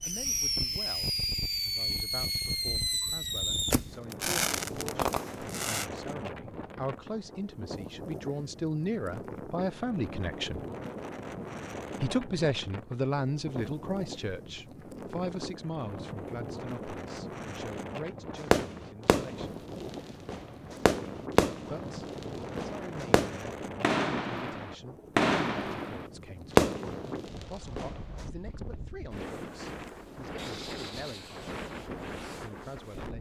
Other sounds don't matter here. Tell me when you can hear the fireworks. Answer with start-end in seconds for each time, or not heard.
0.0-5.8, 18.4-28.2.